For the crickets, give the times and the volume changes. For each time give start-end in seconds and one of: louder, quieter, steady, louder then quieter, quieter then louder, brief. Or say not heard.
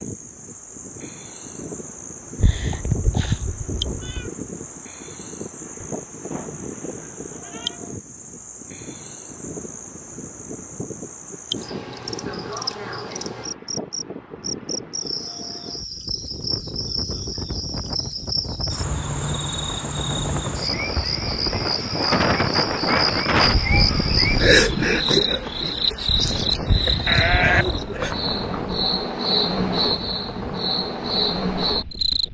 0.0-32.2 louder.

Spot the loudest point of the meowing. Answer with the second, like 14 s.
3 s.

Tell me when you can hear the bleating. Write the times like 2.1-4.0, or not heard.
5.8-7.8, 27.1-28.6.